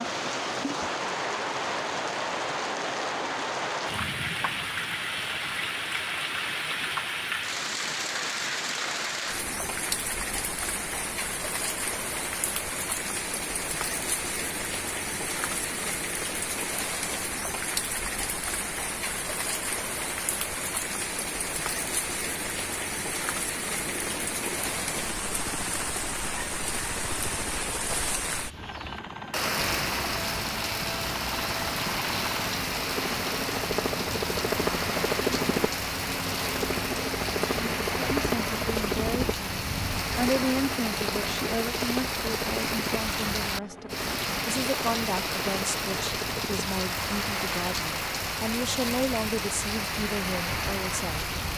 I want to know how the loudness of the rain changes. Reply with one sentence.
The volume of the rain stays about the same.